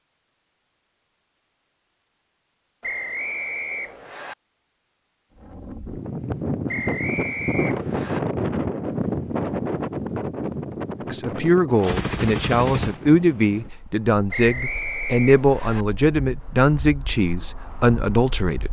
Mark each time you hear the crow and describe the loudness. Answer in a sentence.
You can't hear the crow here.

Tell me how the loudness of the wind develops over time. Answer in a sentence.
The loudness of the wind goes down.